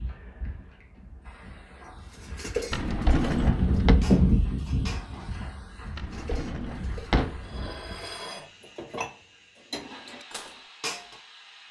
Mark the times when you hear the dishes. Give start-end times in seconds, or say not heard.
2.1-11.2.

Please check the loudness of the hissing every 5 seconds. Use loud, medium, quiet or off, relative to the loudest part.
loud, quiet, quiet.